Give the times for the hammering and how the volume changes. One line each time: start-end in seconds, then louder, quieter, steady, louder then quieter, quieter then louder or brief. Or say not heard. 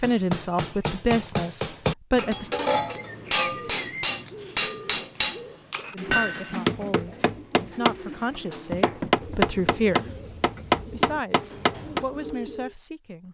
0.0-12.1 louder.